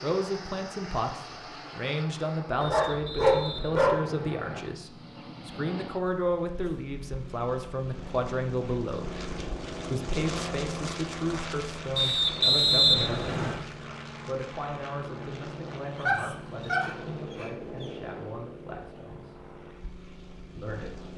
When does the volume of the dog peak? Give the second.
3 s.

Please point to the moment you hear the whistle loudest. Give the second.
13 s.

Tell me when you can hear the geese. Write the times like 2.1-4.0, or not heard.
not heard.